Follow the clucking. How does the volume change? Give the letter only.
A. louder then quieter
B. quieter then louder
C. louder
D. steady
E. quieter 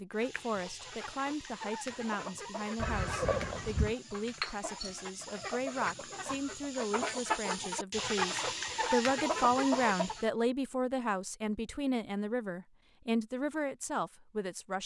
C.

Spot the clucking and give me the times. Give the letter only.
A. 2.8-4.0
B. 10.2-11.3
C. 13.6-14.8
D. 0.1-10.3
D.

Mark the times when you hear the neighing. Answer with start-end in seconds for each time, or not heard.
2.8-4.0.